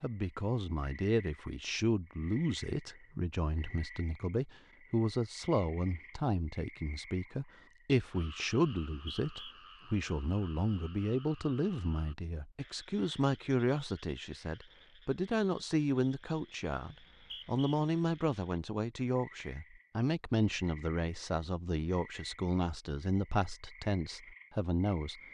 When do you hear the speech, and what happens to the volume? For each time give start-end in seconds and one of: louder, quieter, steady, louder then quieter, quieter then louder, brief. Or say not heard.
0.0-25.2 steady.